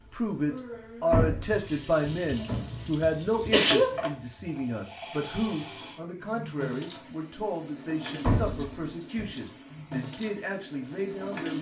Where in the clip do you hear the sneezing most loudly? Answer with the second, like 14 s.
4 s.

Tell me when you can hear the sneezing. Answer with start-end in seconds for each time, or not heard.
2.3-4.0.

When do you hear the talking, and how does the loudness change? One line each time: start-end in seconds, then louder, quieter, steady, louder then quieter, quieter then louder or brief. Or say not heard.
0.1-11.5 quieter.